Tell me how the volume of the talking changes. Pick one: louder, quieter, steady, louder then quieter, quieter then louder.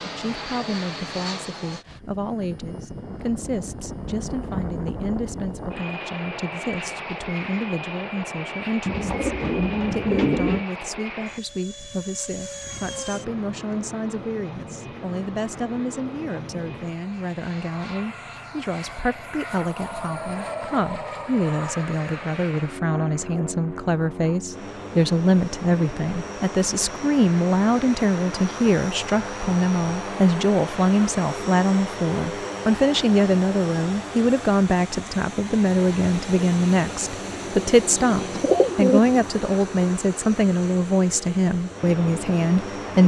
louder.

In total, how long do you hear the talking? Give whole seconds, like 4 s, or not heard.
43 s.